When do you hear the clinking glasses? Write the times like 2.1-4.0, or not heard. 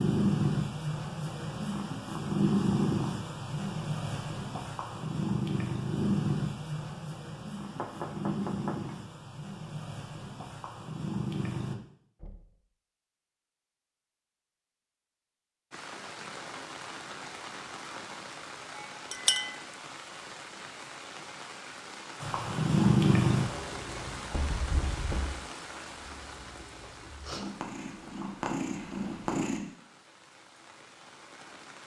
18.8-19.6.